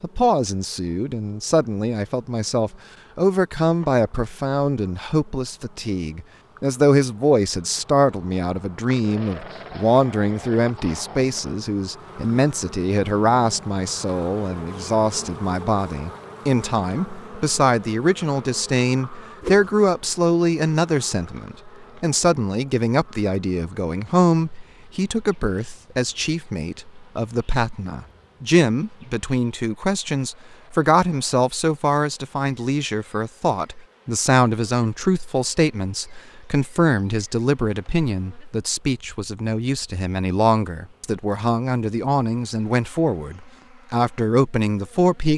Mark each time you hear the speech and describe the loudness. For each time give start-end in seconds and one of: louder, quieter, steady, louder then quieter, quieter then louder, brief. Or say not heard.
0.0-45.3 steady.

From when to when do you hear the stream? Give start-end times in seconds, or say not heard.
not heard.